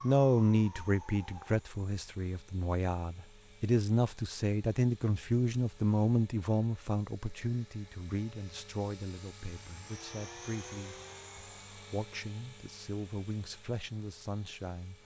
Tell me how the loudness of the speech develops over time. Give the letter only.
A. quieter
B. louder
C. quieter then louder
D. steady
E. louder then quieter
A.